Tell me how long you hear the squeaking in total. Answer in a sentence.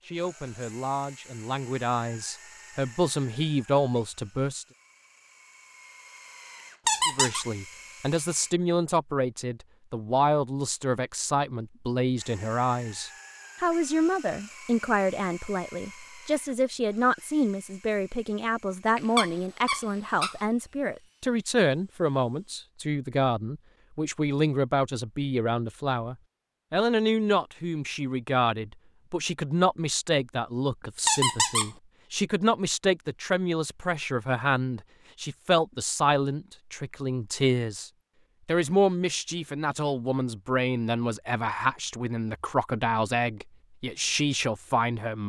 The squeaking can be heard for 3 seconds in total.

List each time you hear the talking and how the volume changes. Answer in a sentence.
You can hear the talking from 0.0 to 4.7 s, getting louder; and from 7.0 to 45.2 s, at a steady volume.